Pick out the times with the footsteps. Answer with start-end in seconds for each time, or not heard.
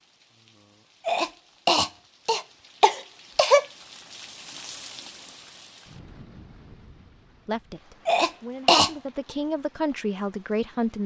not heard.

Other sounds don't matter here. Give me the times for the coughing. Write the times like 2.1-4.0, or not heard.
1.1-3.6, 8.1-8.9.